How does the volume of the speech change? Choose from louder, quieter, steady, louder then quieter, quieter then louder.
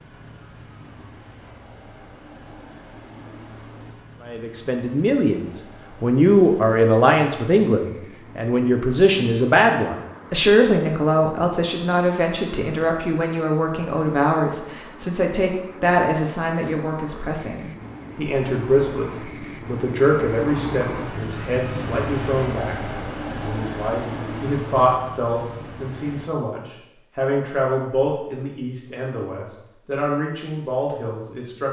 quieter.